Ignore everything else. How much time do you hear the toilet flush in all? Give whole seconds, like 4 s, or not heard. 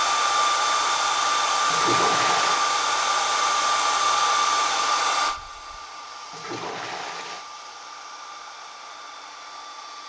2 s.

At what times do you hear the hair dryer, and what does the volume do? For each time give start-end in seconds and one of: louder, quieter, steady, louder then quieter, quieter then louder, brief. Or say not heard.
0.0-10.0 quieter.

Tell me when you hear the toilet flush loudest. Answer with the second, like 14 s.
2 s.